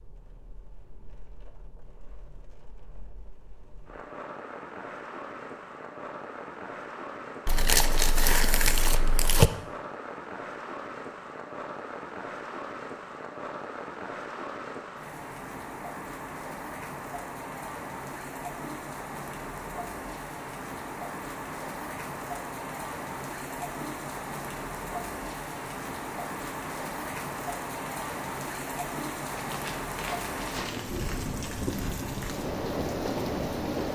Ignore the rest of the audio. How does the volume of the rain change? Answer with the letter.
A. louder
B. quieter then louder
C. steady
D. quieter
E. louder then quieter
A.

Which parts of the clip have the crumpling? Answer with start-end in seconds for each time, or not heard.
7.5-9.5, 29.4-31.0.